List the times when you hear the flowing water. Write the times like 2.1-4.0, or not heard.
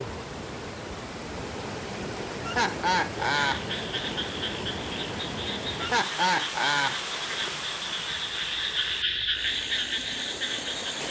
0.0-11.0.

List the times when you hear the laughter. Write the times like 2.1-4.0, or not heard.
2.5-3.6, 5.8-7.0.